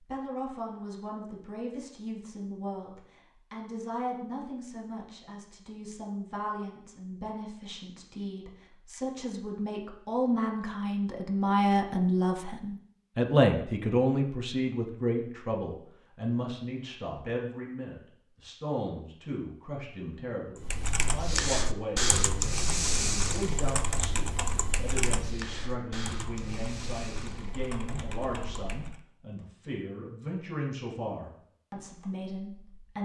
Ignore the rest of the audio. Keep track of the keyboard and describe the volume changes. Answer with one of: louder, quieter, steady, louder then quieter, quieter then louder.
quieter.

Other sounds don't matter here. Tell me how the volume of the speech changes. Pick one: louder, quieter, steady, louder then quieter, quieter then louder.
louder then quieter.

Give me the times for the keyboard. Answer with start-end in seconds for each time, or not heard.
20.6-29.0.